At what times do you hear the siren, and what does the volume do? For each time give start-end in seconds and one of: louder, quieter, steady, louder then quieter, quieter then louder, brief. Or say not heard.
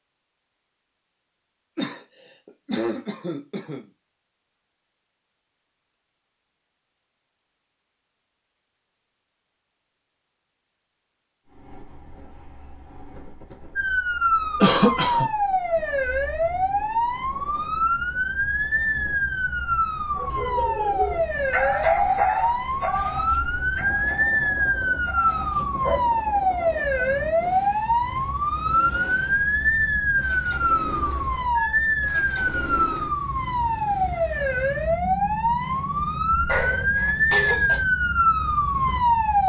13.8-39.4 steady.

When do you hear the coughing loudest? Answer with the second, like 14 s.
15 s.